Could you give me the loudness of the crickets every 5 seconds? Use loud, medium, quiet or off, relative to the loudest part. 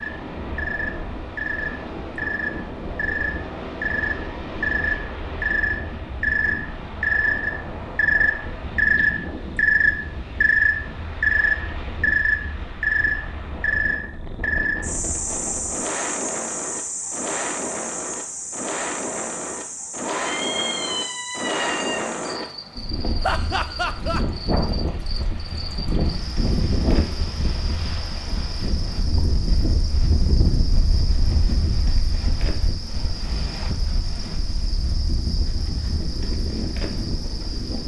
medium, loud, loud, medium, quiet, quiet, quiet, quiet.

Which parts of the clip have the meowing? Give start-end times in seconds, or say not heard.
20.1-22.0.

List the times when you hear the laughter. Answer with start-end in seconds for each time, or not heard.
23.2-24.2.